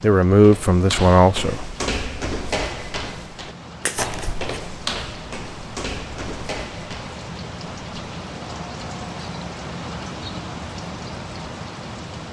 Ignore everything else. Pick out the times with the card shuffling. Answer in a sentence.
The card shuffling can be heard from 3.8 to 4.5 s.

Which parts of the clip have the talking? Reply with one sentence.
You can hear the talking from 0.0 to 1.8 s.